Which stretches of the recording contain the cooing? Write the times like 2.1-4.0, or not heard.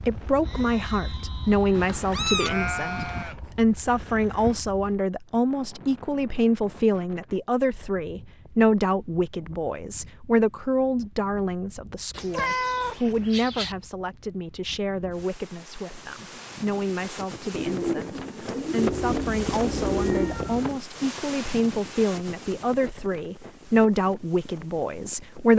17.5-20.4.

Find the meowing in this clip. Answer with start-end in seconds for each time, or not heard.
1.7-3.2, 12.1-13.8, 18.9-20.7.